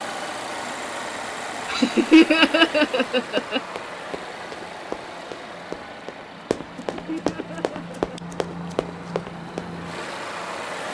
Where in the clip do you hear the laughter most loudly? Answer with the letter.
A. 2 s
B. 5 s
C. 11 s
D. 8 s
A.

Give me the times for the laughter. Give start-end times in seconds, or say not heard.
1.7-3.6, 6.9-8.2.